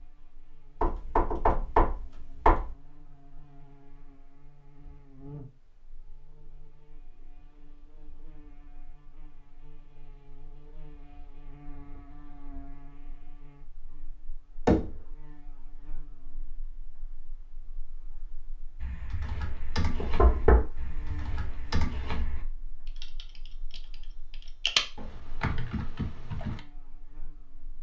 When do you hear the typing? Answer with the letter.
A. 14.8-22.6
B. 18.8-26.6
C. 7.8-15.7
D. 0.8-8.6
B.